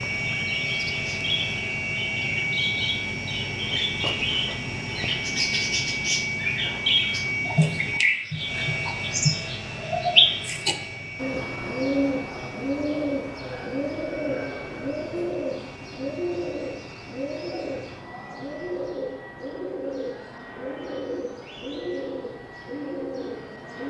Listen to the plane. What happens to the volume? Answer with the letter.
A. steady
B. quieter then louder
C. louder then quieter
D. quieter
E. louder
D.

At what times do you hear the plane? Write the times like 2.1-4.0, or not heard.
0.0-23.8.